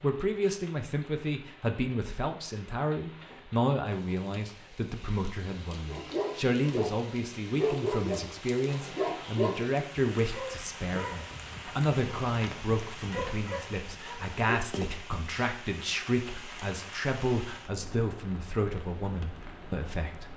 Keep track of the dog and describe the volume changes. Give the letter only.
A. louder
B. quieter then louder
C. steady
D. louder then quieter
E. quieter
E.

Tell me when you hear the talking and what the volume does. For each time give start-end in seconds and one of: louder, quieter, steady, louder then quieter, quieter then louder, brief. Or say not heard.
0.0-20.3 steady.